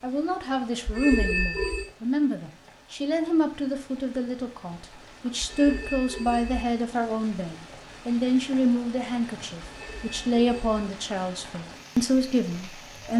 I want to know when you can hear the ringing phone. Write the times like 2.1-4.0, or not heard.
0.8-1.9, 5.4-6.7, 9.6-10.7.